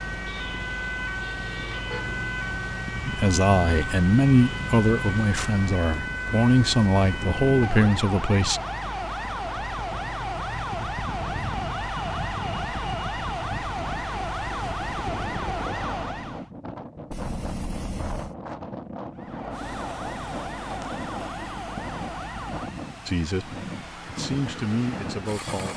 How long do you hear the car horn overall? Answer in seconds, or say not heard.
3 s.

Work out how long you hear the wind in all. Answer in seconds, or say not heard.
26 s.